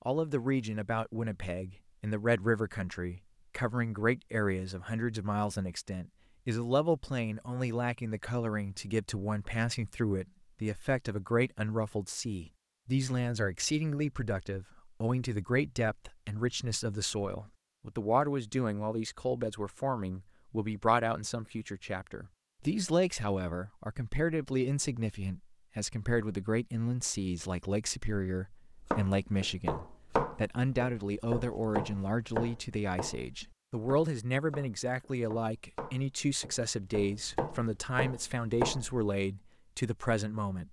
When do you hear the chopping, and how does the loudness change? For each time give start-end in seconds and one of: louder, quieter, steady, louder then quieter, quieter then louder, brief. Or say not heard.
28.9-39.1 quieter then louder.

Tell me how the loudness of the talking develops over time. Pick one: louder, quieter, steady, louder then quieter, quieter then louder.
steady.